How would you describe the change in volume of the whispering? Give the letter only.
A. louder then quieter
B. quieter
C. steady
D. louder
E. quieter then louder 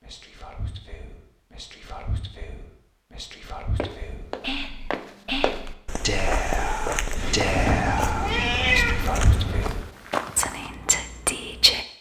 D.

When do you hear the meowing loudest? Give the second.
9 s.